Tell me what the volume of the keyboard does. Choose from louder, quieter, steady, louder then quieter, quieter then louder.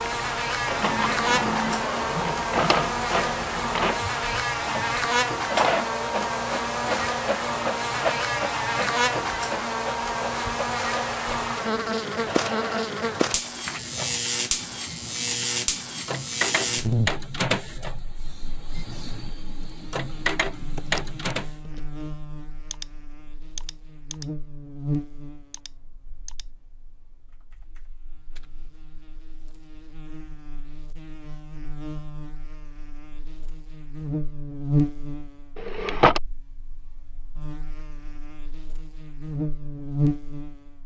quieter.